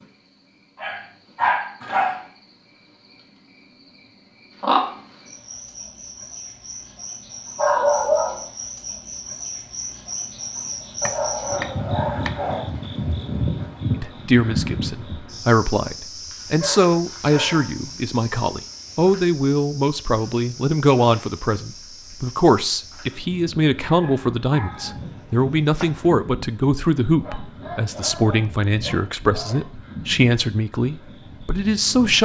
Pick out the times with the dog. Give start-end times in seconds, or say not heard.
0.8-2.2, 7.5-8.4, 11.0-12.7, 16.6-17.8, 23.8-24.9, 27.2-29.6.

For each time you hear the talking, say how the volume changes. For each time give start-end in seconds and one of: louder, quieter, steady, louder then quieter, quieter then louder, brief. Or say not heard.
13.9-32.2 steady.